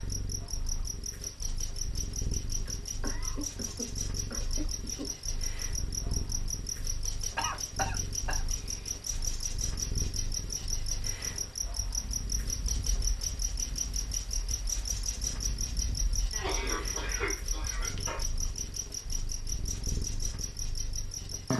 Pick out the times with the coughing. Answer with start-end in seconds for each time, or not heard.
2.5-5.1, 7.3-8.4, 16.3-18.2.